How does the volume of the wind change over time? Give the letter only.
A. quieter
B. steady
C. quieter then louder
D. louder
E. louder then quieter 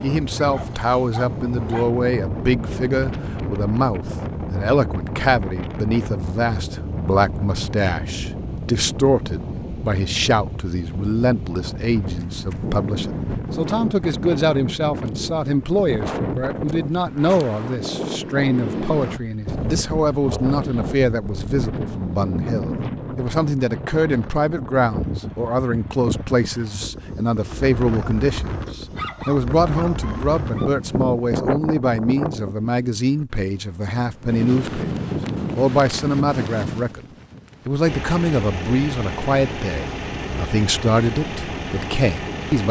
B.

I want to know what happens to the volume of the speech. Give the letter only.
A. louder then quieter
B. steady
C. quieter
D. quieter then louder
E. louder
B.